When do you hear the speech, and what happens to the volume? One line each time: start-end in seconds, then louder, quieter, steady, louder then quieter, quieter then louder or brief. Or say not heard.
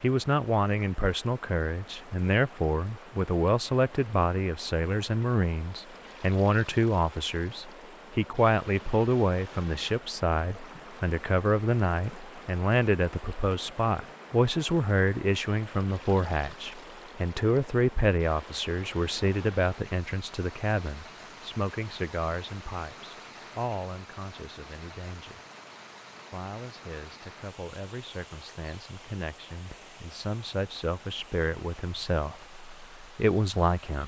0.0-25.4 quieter
26.3-34.0 louder.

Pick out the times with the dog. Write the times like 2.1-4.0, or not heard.
not heard.